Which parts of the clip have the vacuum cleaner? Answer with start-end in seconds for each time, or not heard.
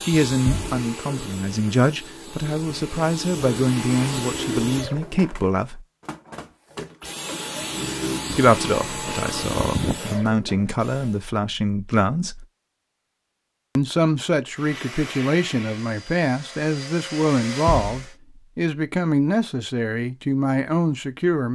0.0-11.2, 14.5-18.1.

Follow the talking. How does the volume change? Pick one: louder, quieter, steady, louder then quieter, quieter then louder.
steady.